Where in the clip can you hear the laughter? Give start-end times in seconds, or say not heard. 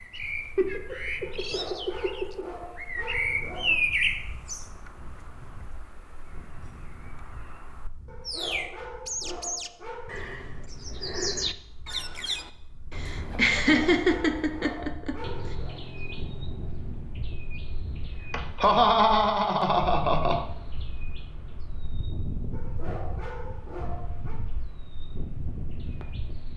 0.6-2.5, 12.9-15.2, 18.3-20.4.